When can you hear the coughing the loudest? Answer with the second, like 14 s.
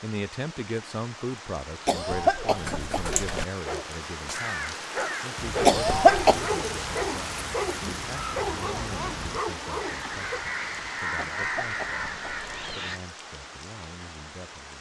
6 s.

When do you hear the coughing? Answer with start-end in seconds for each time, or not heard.
1.9-3.5, 5.7-6.5, 11.2-12.8.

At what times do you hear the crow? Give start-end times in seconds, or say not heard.
4.2-13.0.